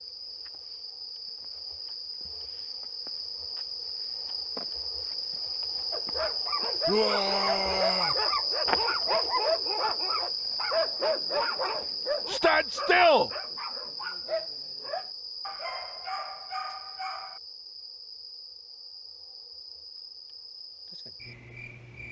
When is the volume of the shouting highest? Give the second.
13 s.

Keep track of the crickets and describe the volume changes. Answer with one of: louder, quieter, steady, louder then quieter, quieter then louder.
louder then quieter.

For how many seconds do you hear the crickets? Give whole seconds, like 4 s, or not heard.
22 s.